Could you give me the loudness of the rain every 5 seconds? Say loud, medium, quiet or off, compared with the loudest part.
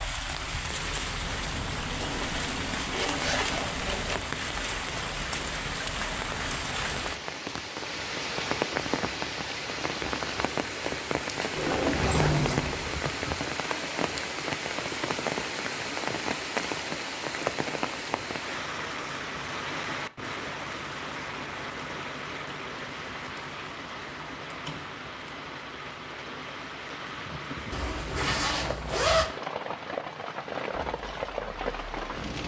loud, loud, loud, loud, medium, medium, loud.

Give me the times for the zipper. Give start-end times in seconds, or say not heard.
2.1-4.2, 11.7-13.3, 27.7-29.4.